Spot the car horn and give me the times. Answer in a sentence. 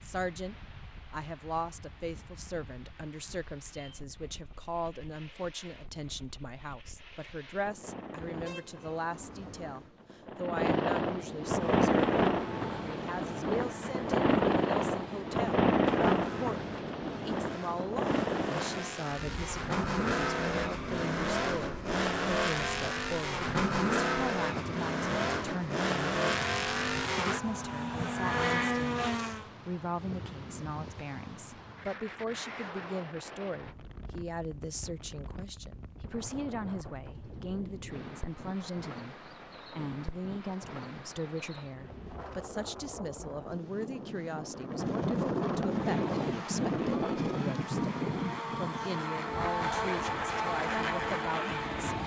The car horn can be heard from 8.2 to 10.0 s.